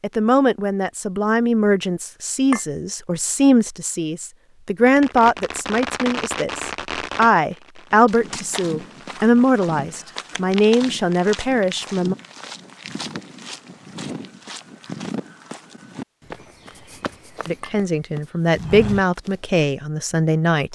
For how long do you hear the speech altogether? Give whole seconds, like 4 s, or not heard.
15 s.